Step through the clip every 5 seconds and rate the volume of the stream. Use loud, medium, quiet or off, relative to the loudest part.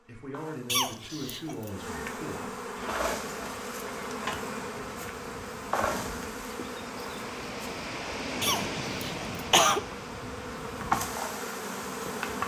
medium, loud, medium.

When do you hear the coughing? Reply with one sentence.
The coughing can be heard from 0.7 to 1.7 s and from 8.4 to 9.8 s.